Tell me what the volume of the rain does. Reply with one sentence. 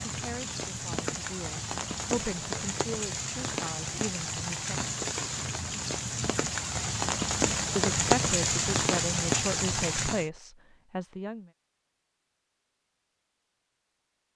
The loudness of the rain goes up.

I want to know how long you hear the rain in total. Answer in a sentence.
You can hear the rain for 10 seconds altogether.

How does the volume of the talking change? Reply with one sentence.
The volume of the talking goes up.